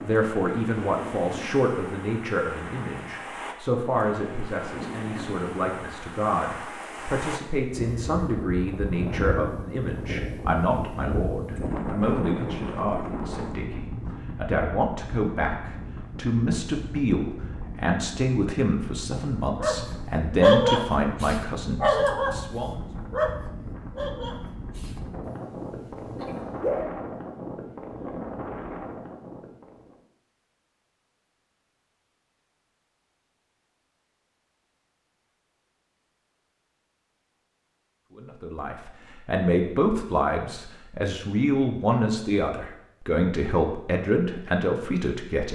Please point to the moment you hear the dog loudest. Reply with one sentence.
The loudest moment of the dog is at 21 seconds.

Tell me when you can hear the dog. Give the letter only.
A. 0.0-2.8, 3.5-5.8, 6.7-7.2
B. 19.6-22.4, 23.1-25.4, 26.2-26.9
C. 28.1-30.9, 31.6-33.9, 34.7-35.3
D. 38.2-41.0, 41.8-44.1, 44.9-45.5
B.